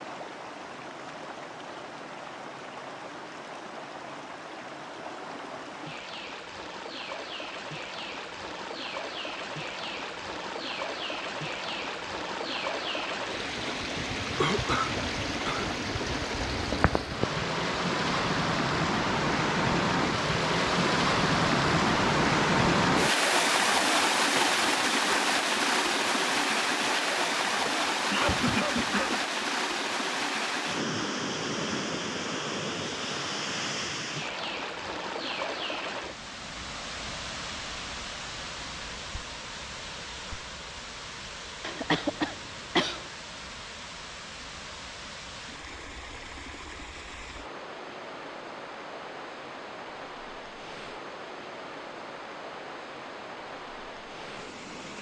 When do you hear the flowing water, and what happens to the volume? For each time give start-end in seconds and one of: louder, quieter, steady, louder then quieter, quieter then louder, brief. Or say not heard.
0.0-54.9 louder then quieter.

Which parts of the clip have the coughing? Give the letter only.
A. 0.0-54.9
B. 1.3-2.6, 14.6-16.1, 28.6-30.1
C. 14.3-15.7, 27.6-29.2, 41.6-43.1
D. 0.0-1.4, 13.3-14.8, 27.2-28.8
C.